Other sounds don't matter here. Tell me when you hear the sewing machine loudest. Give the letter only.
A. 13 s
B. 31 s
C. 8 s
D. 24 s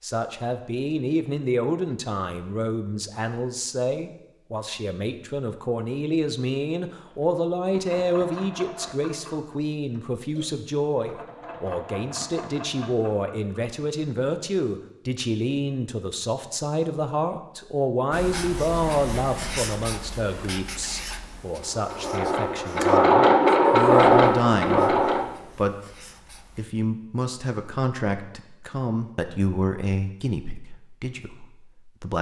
D.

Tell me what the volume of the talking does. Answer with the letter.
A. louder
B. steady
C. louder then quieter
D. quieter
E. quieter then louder
B.